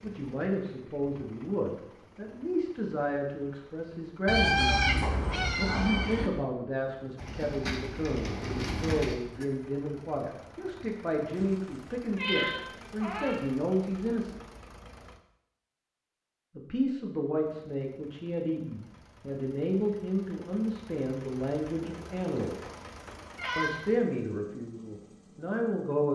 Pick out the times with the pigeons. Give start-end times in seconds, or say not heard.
7.2-9.2.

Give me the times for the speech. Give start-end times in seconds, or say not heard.
0.0-14.4, 16.6-22.6, 23.6-26.0.